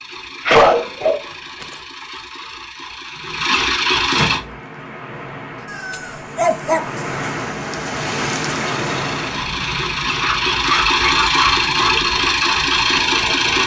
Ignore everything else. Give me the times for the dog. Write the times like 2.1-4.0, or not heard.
0.5-1.6, 5.7-7.3, 10.2-11.9.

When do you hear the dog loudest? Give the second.
1 s.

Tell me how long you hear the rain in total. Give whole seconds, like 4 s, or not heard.
9 s.